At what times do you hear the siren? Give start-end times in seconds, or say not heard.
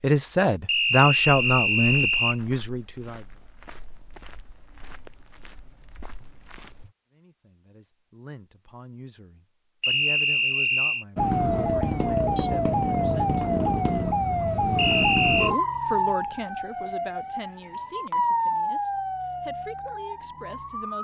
11.2-20.9.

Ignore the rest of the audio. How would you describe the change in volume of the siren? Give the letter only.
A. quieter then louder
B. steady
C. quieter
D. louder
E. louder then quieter
C.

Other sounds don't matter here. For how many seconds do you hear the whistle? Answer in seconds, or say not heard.
4 s.